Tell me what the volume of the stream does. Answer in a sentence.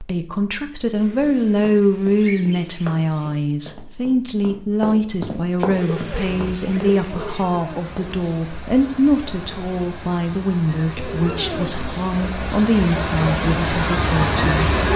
The volume of the stream goes up.